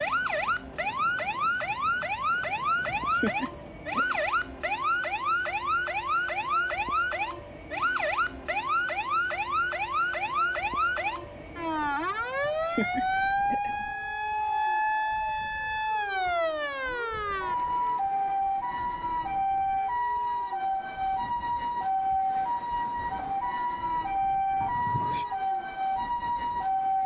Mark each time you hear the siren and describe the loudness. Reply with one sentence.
You can hear the siren from 0.0 to 27.0 s, at a steady volume.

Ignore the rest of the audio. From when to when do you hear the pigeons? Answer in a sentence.
The pigeons can't be heard in this clip.